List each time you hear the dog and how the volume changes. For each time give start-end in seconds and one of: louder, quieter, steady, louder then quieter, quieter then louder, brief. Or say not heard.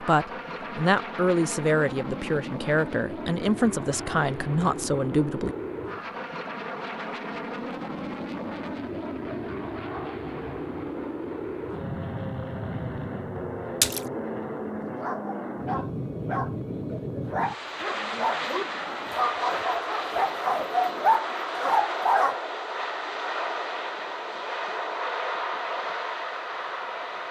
15.0-22.4 louder.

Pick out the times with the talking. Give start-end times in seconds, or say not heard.
0.0-5.5.